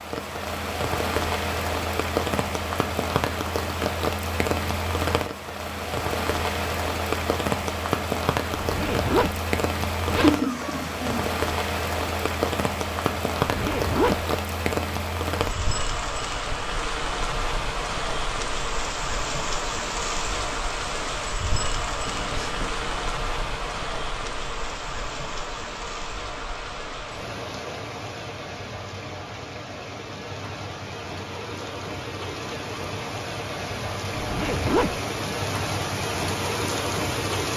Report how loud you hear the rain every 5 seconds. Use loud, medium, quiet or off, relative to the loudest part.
loud, loud, loud, loud, loud, medium, medium, loud.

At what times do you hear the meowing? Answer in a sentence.
You can hear the meowing from 10.2 to 11.3 s and from 22.1 to 22.9 s.